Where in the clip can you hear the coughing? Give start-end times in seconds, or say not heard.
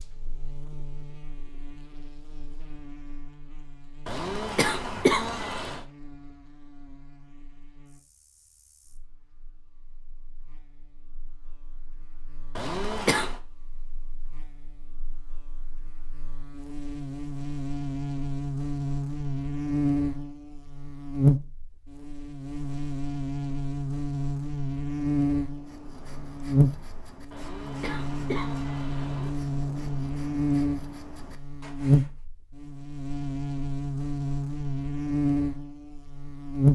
4.0-5.8, 12.6-13.3, 27.3-29.3.